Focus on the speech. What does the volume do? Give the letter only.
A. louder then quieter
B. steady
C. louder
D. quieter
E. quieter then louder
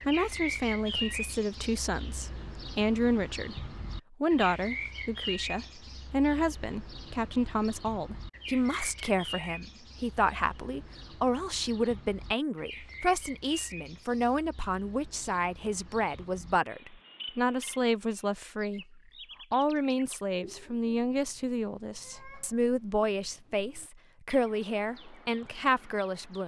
B.